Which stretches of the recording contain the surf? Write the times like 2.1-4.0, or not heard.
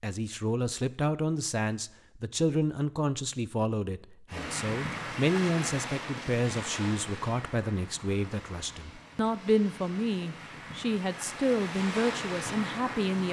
4.2-13.2.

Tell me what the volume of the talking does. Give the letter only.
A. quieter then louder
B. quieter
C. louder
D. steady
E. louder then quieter
D.